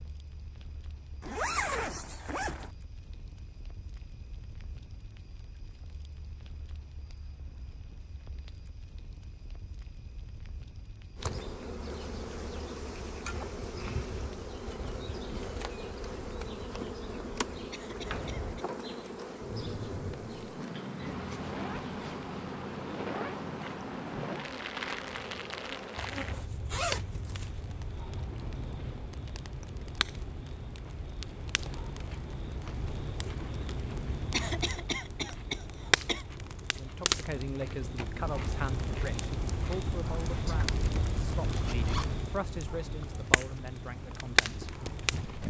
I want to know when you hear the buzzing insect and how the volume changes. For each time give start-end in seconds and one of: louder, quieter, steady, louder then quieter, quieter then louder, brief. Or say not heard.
11.2-26.5 steady.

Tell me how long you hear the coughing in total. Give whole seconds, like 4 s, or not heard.
3 s.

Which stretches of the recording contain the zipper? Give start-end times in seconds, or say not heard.
1.2-2.7, 25.9-28.0, 40.5-42.1.